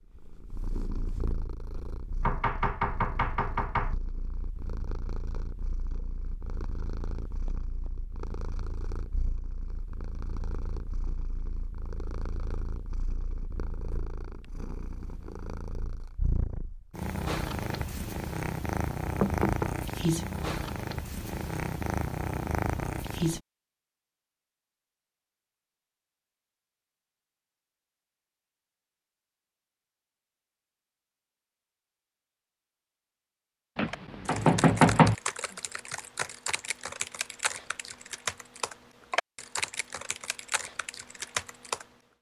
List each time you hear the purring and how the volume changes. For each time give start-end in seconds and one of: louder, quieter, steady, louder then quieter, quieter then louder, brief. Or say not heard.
0.1-23.4 louder.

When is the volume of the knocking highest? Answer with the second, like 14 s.
35 s.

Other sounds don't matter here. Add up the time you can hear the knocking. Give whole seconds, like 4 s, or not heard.
4 s.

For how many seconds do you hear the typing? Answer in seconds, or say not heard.
8 s.